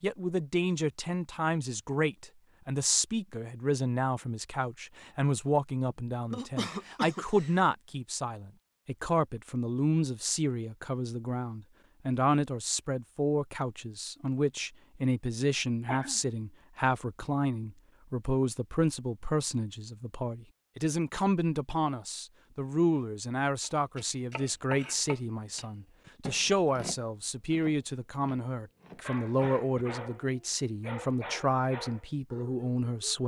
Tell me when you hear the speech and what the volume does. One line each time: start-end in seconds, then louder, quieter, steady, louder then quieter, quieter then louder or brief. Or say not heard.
0.0-33.2 steady.